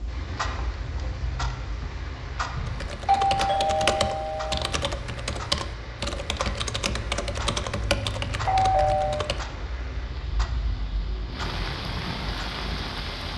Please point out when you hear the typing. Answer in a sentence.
The typing can be heard from 2.6 to 9.4 s.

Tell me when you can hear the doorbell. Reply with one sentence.
The doorbell can be heard from 2.5 to 4.5 s and from 8.4 to 9.2 s.